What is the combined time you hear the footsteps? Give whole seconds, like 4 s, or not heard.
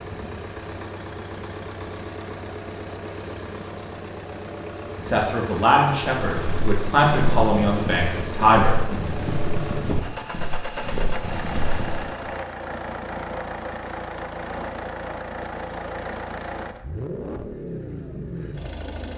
6 s.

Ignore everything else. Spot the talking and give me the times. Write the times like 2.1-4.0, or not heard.
5.0-8.8.